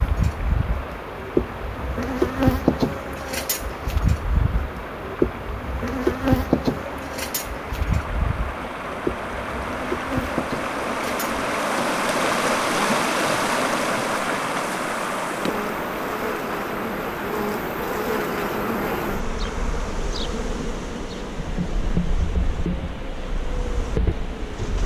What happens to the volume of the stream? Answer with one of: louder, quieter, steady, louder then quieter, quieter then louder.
louder then quieter.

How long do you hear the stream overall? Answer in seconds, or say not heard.
25 s.